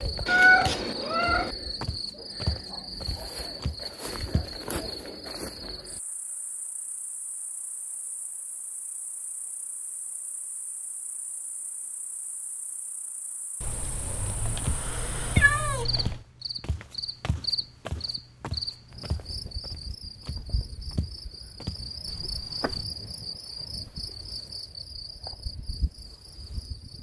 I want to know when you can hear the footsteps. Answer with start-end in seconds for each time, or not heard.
0.0-4.5, 14.6-22.9.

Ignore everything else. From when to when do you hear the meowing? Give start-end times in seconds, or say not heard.
0.2-1.6, 13.6-16.2.